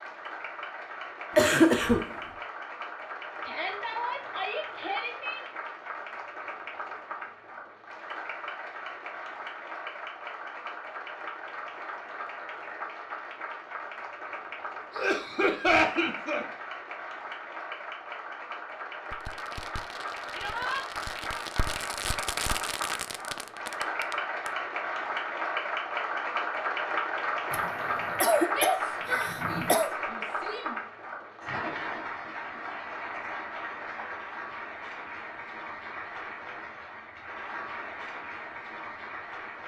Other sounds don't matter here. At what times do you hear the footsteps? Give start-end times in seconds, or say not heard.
not heard.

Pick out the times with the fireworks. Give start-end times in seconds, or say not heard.
19.1-24.5.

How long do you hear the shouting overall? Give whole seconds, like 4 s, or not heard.
5 s.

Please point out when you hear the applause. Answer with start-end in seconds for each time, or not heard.
0.0-39.6.